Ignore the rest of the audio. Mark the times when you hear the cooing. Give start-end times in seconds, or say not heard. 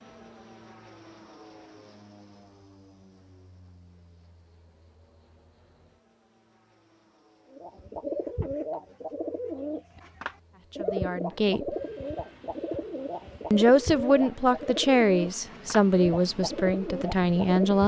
7.5-17.8.